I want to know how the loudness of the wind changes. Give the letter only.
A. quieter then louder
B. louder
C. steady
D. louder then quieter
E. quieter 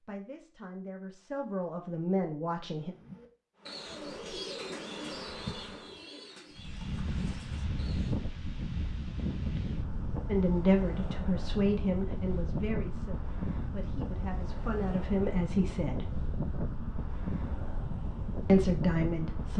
C.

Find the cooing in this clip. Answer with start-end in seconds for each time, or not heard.
2.8-8.2.